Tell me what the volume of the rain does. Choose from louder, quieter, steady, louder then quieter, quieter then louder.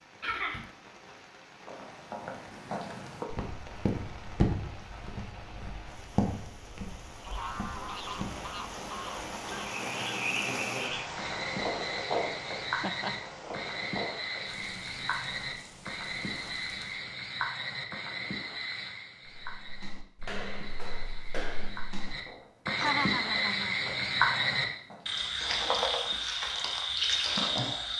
louder then quieter.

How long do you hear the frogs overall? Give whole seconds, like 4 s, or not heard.
18 s.